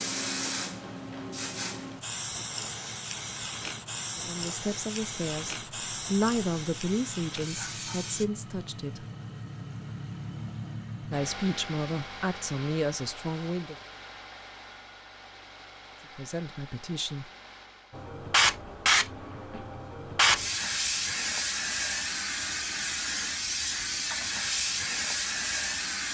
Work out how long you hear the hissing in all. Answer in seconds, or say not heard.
16 s.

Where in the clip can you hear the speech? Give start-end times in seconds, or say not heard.
4.2-9.1, 11.1-13.8, 16.1-17.2.